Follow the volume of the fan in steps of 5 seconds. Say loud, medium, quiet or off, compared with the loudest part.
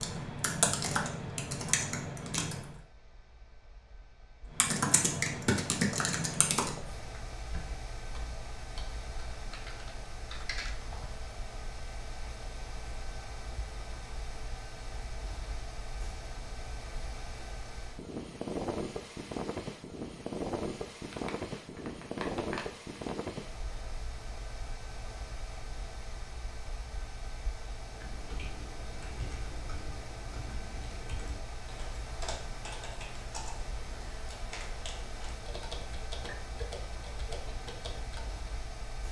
quiet, medium, medium, loud, loud, medium, medium, medium.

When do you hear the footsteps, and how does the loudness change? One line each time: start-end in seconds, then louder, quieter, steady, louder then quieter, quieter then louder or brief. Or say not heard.
not heard.